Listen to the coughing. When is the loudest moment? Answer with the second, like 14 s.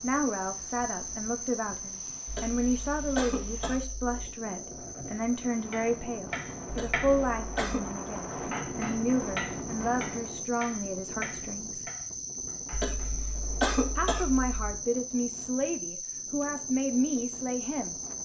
14 s.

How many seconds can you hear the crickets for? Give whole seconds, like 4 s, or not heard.
18 s.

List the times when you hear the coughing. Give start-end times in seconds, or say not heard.
2.2-4.2, 6.7-7.8, 12.7-14.8.